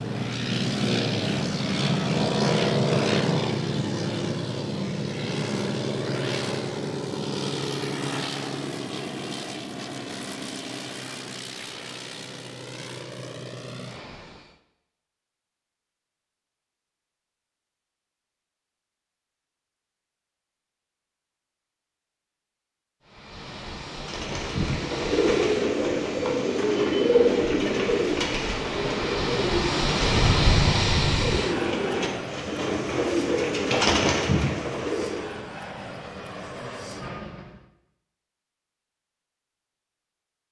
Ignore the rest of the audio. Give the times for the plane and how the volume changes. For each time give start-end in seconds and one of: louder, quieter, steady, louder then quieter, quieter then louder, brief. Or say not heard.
0.0-14.6 quieter
23.1-37.7 louder then quieter.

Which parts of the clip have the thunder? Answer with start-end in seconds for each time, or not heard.
30.1-31.4.